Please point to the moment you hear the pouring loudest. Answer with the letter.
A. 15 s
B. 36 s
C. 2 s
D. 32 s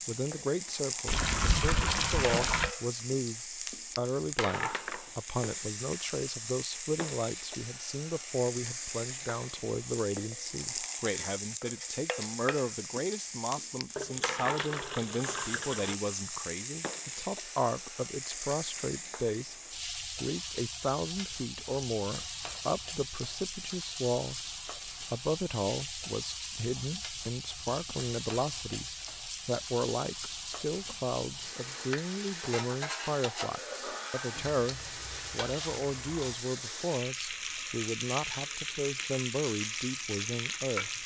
C.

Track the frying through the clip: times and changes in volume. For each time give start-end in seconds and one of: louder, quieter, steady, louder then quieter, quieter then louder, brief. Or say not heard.
0.0-41.0 steady.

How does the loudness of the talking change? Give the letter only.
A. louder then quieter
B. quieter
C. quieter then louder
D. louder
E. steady
E.